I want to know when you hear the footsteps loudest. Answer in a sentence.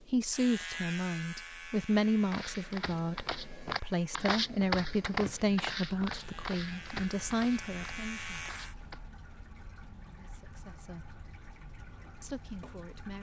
The loudest moment of the footsteps is at 5 seconds.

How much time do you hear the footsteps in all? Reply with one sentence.
You can hear the footsteps for 7 seconds altogether.